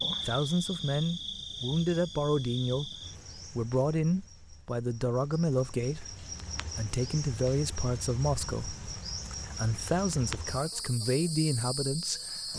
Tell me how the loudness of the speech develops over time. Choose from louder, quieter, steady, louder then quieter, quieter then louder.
steady.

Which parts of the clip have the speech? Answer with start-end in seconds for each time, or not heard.
0.2-12.5.